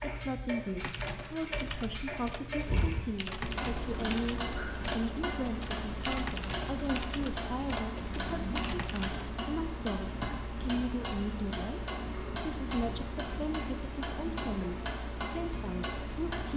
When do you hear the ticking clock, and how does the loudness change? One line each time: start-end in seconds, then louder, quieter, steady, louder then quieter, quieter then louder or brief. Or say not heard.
0.0-16.5 steady.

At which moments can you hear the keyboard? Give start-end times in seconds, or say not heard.
0.8-9.3.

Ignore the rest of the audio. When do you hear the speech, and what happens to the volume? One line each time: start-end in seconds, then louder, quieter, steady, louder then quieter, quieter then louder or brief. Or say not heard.
0.0-16.5 steady.